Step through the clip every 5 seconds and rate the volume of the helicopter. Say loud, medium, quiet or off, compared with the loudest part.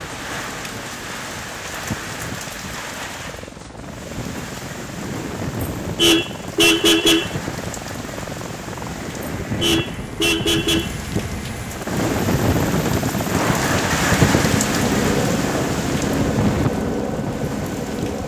quiet, medium, loud, loud.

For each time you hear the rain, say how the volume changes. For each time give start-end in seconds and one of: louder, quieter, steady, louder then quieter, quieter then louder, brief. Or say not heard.
0.0-18.2 louder.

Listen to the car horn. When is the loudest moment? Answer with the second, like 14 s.
7 s.